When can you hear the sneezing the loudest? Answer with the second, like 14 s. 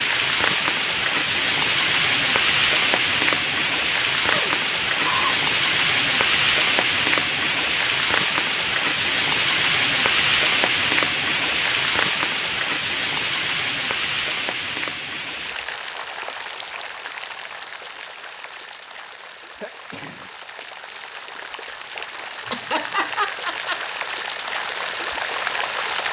5 s.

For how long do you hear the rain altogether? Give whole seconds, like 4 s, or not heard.
26 s.